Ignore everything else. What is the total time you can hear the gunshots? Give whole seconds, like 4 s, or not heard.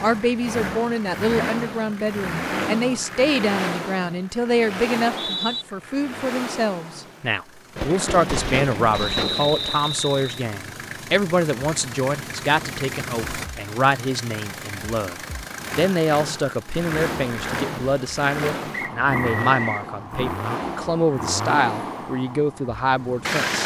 2 s.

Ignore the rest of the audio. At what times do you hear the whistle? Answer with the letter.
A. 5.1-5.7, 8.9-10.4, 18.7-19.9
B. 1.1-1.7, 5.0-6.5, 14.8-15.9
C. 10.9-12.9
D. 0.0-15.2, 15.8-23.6
A.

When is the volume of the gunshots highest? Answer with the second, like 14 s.
8 s.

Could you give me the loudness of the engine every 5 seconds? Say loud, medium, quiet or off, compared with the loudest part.
loud, medium, medium, loud, loud.